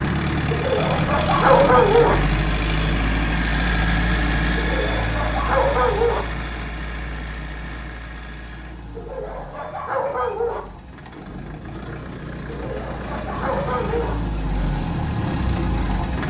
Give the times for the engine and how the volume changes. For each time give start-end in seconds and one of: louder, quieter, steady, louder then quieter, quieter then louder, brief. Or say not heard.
0.0-16.2 quieter then louder.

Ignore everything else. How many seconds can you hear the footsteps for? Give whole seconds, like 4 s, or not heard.
not heard.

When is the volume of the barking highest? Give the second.
2 s.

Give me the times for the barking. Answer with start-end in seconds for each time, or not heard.
0.5-2.1, 4.5-6.2, 8.9-10.6, 12.4-14.2.